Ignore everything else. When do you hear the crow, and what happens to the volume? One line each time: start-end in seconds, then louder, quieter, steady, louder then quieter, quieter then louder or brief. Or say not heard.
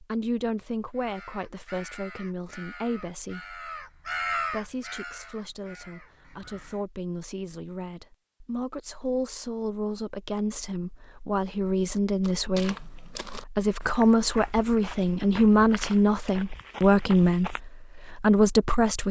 0.9-6.8 louder then quieter.